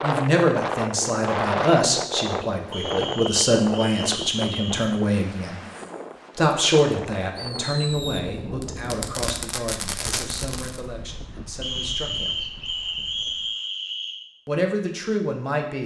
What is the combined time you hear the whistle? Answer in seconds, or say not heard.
5 s.